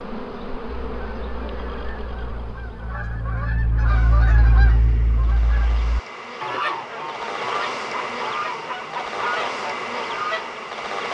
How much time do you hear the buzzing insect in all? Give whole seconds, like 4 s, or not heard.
11 s.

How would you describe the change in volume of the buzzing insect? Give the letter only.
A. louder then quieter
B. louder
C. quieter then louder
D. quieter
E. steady
C.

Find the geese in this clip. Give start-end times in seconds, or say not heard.
0.8-10.5.